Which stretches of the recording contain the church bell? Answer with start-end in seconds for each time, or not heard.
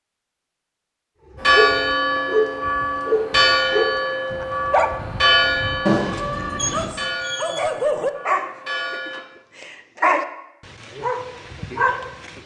1.4-9.2.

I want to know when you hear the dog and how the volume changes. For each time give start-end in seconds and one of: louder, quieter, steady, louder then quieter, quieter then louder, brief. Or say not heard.
1.4-12.4 steady.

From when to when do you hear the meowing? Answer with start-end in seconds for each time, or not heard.
5.8-6.9.